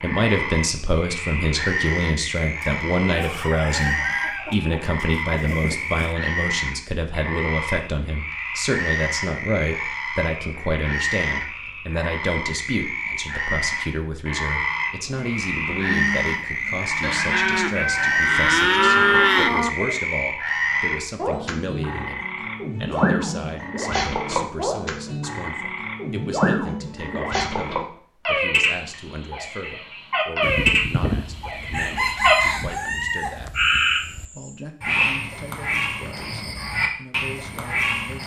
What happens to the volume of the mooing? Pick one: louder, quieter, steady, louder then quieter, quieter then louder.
louder.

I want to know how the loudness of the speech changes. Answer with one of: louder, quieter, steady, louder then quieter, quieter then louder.
quieter.